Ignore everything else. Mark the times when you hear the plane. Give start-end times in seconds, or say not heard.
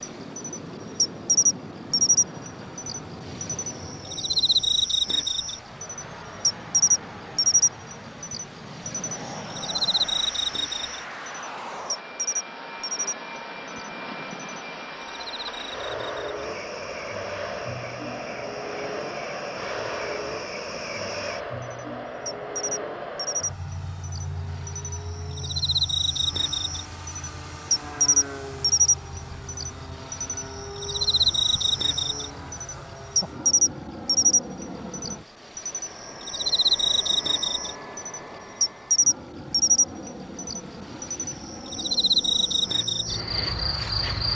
0.0-44.3.